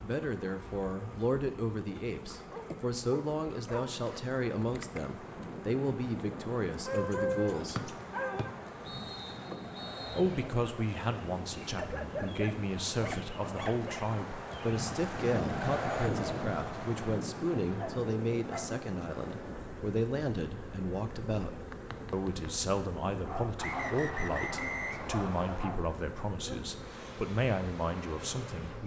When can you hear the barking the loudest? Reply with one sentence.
The loudest moment of the barking is at 7 seconds.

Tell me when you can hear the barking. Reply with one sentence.
The barking can be heard from 2.5 to 3.9 s, from 6.8 to 8.6 s, from 11.8 to 14.0 s, from 17.8 to 18.8 s, from 23.2 to 23.9 s and from 25.1 to 25.9 s.